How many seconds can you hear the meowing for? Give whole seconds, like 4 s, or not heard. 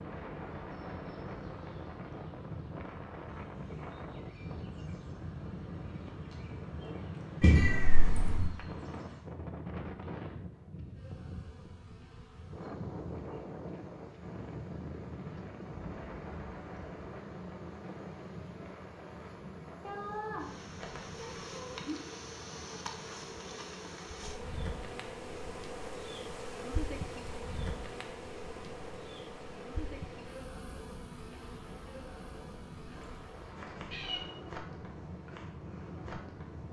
5 s.